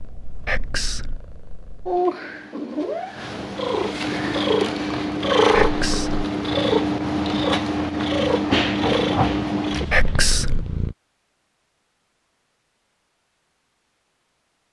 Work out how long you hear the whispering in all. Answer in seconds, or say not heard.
2 s.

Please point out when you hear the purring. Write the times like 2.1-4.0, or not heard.
0.0-10.9.